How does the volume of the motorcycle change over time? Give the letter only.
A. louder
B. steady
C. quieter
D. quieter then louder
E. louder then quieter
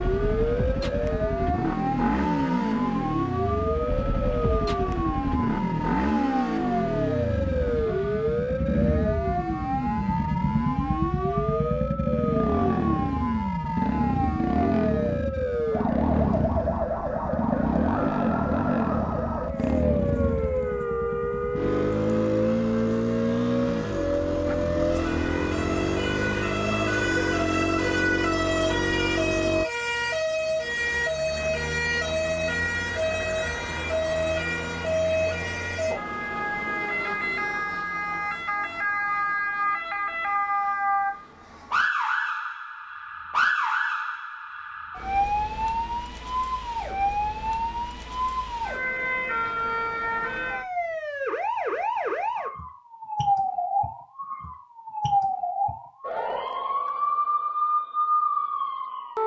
B.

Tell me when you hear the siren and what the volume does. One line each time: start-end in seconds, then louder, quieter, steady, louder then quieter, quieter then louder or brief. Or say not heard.
0.0-59.2 steady.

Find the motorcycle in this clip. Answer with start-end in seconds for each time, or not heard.
0.0-29.6.